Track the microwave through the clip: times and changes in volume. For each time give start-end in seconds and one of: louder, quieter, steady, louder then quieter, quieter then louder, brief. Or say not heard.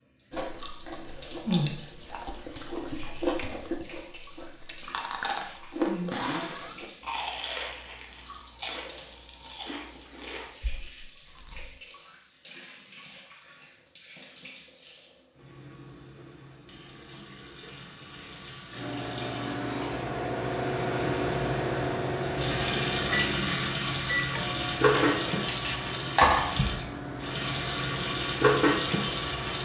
18.7-29.5 quieter.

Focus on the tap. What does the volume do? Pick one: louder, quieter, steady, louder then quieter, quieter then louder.
louder.